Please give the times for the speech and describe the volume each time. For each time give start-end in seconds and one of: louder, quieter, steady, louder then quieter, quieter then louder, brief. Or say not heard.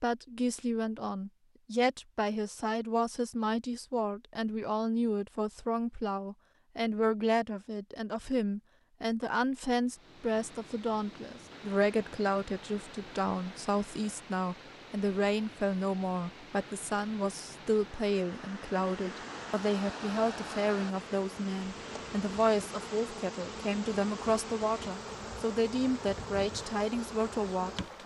0.0-27.8 steady.